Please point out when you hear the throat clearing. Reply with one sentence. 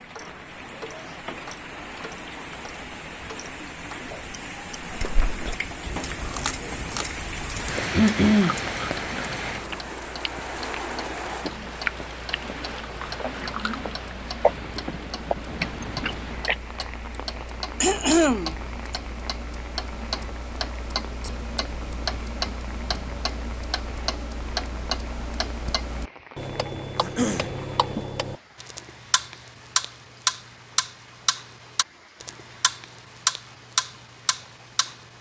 The throat clearing can be heard from 7.9 to 8.6 s, from 17.8 to 18.6 s and from 27.0 to 27.6 s.